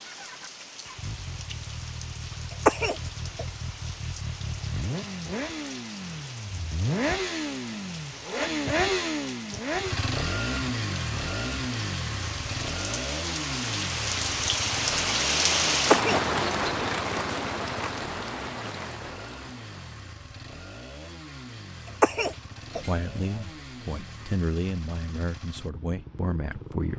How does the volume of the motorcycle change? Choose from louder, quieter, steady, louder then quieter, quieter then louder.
louder then quieter.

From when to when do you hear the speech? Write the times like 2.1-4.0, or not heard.
22.8-26.9.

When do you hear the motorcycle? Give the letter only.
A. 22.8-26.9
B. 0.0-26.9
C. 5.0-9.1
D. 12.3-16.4
B.